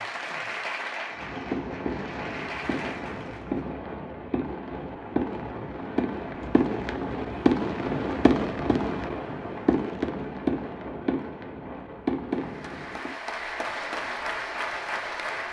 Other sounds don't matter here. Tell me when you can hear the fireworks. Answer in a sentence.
The fireworks can be heard from 1.1 to 13.1 s.